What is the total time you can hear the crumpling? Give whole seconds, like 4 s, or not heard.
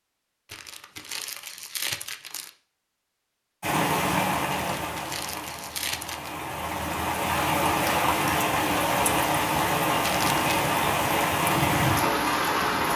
4 s.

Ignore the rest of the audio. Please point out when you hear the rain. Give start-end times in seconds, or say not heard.
3.6-12.9.